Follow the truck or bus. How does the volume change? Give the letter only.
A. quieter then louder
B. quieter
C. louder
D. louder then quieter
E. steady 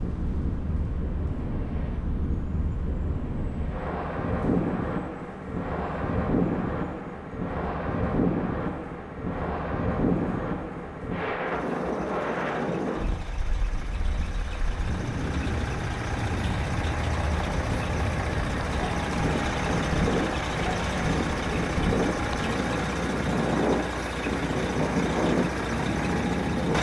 C.